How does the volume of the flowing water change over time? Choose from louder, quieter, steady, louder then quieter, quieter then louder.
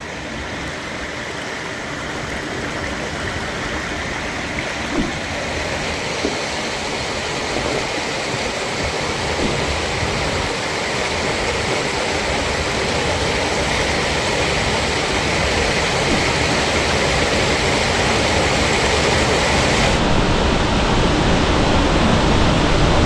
louder.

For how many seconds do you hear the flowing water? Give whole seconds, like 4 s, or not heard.
23 s.